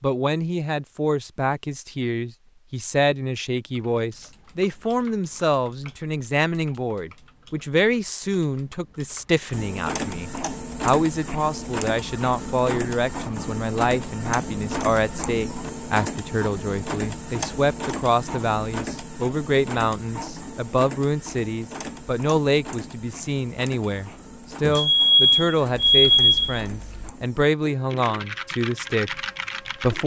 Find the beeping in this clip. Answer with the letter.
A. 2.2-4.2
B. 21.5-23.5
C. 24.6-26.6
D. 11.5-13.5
C.